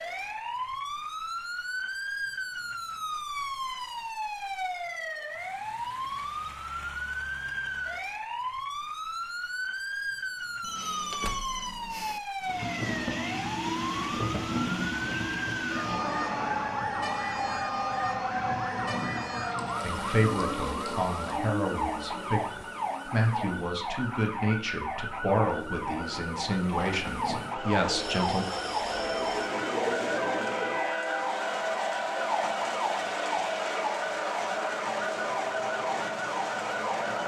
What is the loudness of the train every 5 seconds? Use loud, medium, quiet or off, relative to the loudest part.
off, off, loud, loud, medium, medium, loud, loud.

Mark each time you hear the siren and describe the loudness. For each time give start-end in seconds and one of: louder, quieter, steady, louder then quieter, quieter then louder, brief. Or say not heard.
0.0-37.2 steady.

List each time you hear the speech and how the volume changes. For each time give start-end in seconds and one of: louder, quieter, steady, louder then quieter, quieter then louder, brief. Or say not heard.
19.8-28.4 steady.